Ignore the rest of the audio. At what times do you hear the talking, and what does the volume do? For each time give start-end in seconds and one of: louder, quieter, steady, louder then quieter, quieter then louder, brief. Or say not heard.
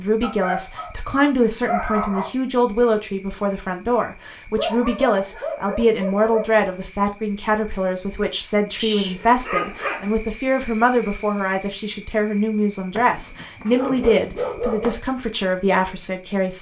0.0-16.5 steady.